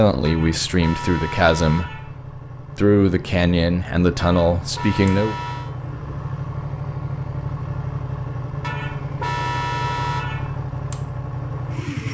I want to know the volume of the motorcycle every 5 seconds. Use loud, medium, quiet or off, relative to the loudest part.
medium, loud, loud.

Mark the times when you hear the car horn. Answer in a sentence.
The car horn can be heard from 0.2 to 2.2 s, from 4.2 to 5.7 s and from 8.6 to 10.7 s.